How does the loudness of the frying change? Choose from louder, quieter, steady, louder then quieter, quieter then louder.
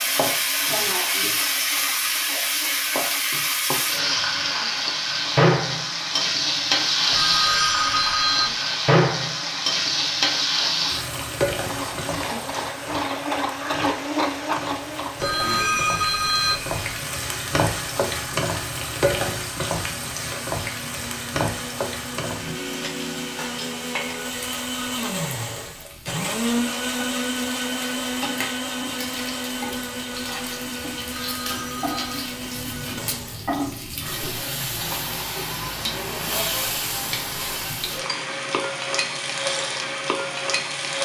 quieter then louder.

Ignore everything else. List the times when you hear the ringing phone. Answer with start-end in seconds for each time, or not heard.
7.1-8.6, 15.2-16.8, 31.1-32.1.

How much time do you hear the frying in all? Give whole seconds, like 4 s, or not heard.
41 s.